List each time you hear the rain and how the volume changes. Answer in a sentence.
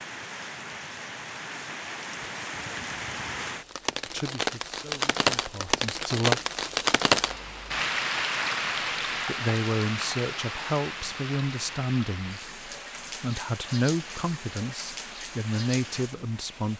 You can hear the rain from 0.0 to 16.7 s, getting louder then quieter.